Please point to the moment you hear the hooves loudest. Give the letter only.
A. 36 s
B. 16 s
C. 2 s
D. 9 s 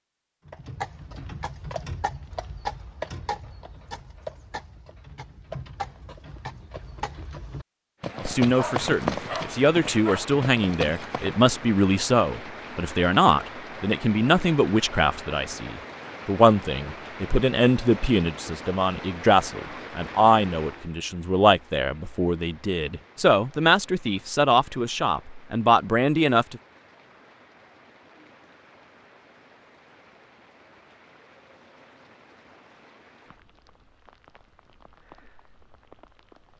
D.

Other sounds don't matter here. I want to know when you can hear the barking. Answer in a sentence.
The barking can be heard from 8.6 to 10.2 s.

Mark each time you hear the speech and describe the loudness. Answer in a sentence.
You can hear the speech from 8.2 to 26.6 s, at a steady volume.